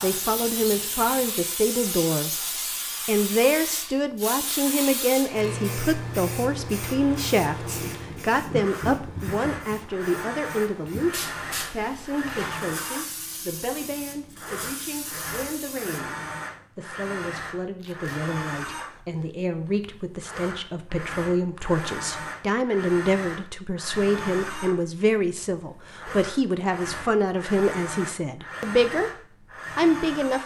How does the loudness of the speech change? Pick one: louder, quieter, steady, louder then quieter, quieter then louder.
quieter then louder.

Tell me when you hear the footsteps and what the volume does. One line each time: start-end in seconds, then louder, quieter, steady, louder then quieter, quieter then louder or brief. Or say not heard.
not heard.